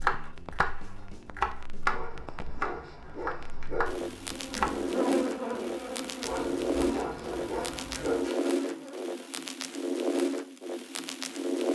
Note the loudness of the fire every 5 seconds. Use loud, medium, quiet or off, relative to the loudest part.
medium, loud, loud.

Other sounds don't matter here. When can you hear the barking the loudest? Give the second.
8 s.